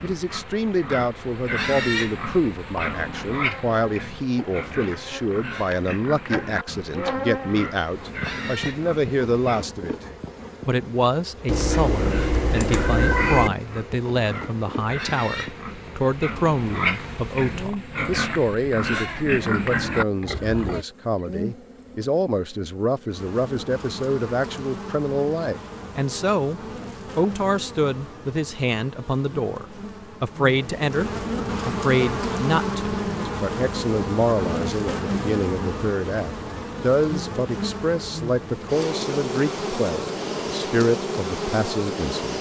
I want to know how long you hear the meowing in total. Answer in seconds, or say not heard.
2 s.